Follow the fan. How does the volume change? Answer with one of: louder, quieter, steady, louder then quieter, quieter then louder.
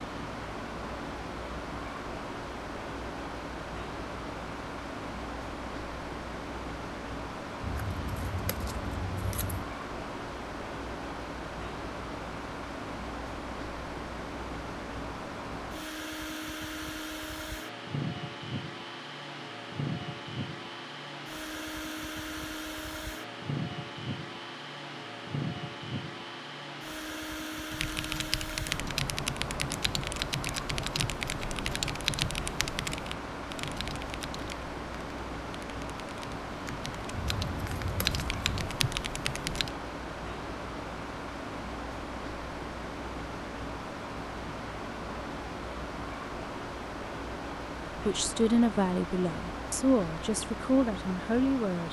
steady.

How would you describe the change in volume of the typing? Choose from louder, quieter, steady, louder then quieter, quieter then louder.
quieter then louder.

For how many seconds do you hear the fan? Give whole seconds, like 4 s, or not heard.
52 s.